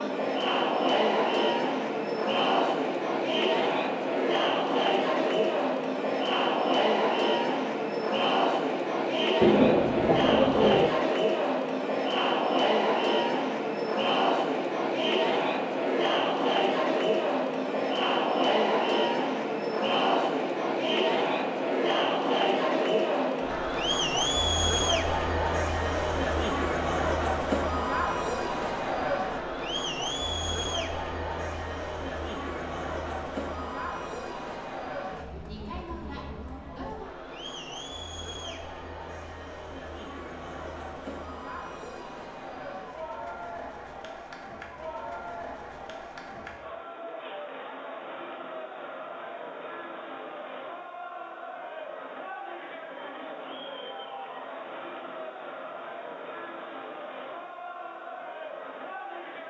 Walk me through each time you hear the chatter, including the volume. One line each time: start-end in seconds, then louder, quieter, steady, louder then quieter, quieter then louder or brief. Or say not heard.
0.0-59.4 quieter.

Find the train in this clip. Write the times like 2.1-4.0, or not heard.
not heard.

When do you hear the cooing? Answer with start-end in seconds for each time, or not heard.
9.4-10.9.